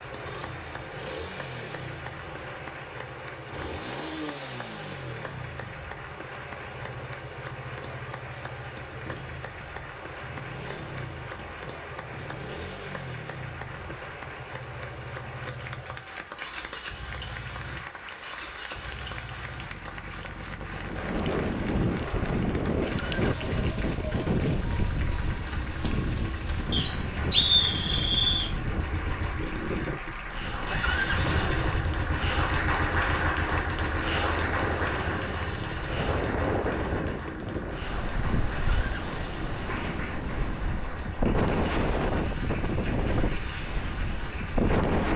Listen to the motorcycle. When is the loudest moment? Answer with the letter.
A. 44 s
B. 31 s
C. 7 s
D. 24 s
B.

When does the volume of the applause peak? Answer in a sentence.
The volume of the applause peaks at 33 seconds.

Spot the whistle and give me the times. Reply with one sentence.
The whistle can be heard from 26.7 to 28.5 s.